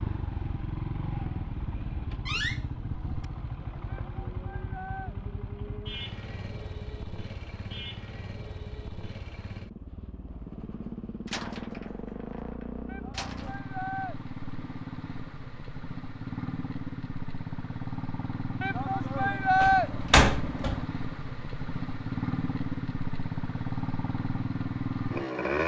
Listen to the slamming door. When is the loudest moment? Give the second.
20 s.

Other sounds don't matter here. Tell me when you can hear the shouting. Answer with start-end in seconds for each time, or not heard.
3.9-5.2, 12.8-14.2, 18.6-19.9.